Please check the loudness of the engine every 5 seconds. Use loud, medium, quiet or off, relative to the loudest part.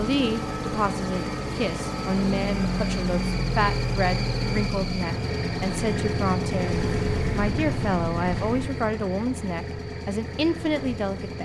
loud, loud, medium.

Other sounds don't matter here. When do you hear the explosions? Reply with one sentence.
The explosions can be heard from 6.7 to 8.7 s.